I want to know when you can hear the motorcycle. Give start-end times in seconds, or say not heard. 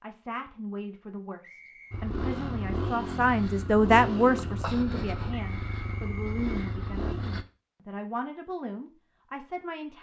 1.9-7.5.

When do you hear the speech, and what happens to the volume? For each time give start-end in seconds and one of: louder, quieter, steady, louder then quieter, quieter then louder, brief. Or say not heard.
0.0-9.9 louder then quieter.